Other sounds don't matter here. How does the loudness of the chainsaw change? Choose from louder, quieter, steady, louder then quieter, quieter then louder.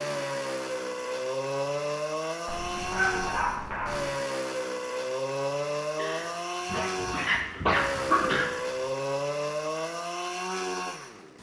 steady.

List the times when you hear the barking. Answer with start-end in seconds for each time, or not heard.
2.5-4.2, 6.0-8.6.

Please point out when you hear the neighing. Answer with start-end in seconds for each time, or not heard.
not heard.